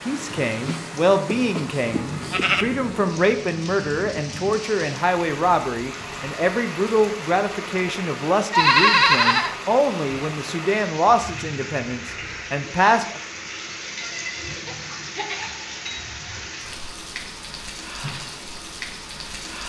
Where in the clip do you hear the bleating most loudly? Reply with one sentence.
The volume of the bleating peaks at 9 seconds.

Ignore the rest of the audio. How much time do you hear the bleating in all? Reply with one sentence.
You can hear the bleating for 5 seconds altogether.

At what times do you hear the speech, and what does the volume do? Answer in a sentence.
The speech can be heard from 0.1 to 13.2 s, at a steady volume.